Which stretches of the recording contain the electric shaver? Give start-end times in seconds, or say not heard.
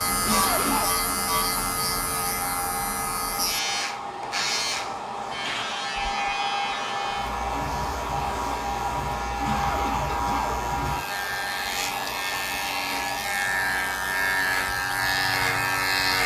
0.0-16.2.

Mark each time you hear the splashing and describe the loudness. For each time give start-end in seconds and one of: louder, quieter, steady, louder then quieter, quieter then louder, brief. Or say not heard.
not heard.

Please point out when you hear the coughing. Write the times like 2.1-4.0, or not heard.
0.2-0.9, 9.4-10.7.